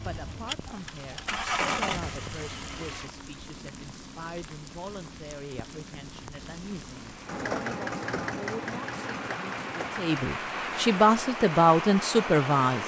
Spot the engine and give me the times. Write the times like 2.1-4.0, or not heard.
0.0-3.1, 7.2-10.2.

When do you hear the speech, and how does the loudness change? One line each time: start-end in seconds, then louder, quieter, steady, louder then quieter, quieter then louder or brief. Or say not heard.
0.1-12.8 louder.